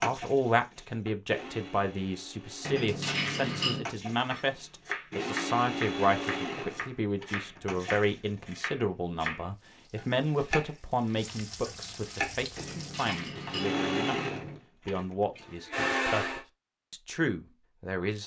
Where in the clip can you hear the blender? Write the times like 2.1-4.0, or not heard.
0.0-8.5, 13.4-16.4.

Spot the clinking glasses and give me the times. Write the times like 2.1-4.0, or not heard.
2.6-3.9, 12.6-14.6.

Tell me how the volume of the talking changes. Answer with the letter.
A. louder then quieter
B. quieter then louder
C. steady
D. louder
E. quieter
C.